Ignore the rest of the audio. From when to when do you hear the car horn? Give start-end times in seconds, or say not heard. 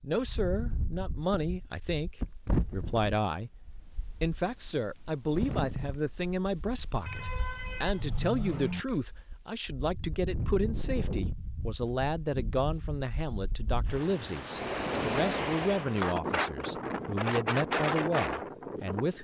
7.0-8.8.